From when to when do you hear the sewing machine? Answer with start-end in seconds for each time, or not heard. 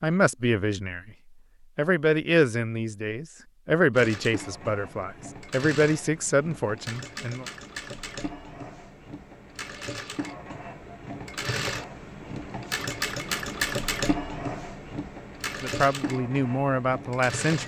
3.9-17.6.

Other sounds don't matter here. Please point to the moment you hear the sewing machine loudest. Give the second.
14 s.